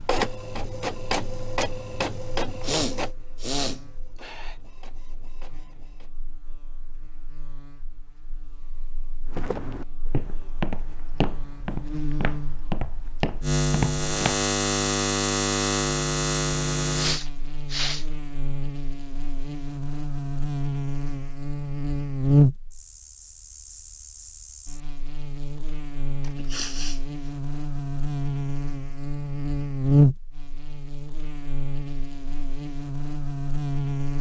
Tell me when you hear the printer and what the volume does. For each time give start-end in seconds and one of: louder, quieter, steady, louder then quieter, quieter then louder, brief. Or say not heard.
0.0-6.2 quieter.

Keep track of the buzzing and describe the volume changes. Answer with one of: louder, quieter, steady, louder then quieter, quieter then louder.
louder.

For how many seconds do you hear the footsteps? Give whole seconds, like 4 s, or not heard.
5 s.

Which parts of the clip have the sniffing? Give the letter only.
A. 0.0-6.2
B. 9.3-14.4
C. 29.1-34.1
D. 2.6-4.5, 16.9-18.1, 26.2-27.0
D.